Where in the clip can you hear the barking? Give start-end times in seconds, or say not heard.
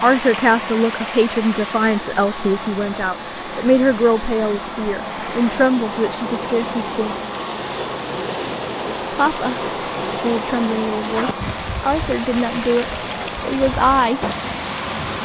not heard.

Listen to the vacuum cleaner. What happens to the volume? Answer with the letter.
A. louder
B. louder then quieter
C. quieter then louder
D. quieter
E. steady
E.